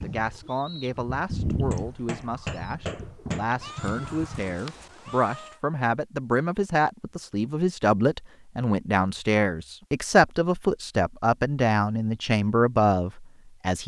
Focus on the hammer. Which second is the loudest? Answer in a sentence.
The volume of the hammer peaks at 3 seconds.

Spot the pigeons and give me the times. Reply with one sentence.
The pigeons can be heard from 0.0 to 5.0 s.